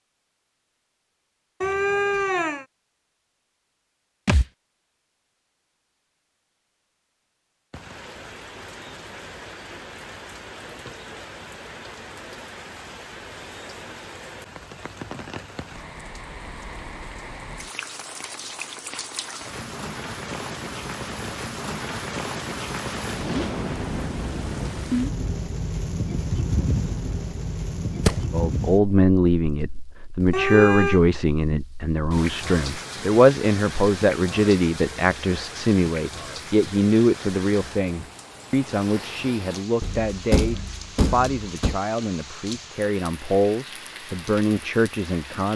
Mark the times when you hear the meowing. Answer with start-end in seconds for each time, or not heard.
1.6-2.6, 30.3-31.0.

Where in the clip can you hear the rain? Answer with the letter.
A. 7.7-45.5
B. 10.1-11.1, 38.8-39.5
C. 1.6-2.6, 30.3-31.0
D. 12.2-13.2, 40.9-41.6
A.